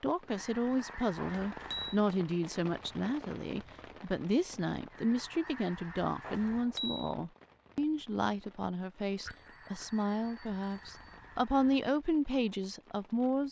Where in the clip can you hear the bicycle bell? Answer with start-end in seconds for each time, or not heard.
1.1-2.0, 6.2-7.1, 9.2-11.2.